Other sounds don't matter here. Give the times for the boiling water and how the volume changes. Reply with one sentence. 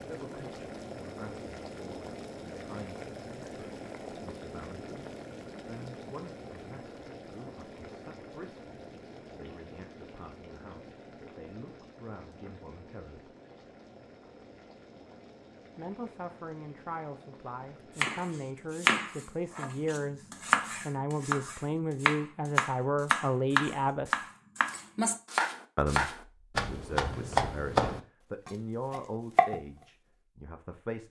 You can hear the boiling water from 0.0 to 18.9 s, getting quieter.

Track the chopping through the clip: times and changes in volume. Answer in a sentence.
You can hear the chopping from 17.9 to 29.6 s, at a steady volume.